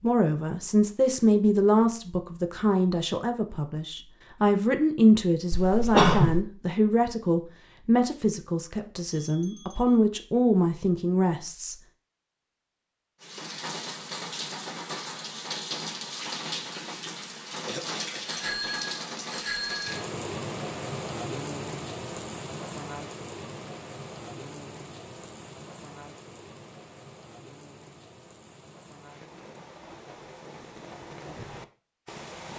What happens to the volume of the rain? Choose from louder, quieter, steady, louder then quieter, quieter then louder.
quieter.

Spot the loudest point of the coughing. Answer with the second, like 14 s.
6 s.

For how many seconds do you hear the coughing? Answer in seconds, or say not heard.
2 s.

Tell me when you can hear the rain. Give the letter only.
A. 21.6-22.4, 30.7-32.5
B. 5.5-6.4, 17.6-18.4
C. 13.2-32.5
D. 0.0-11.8
C.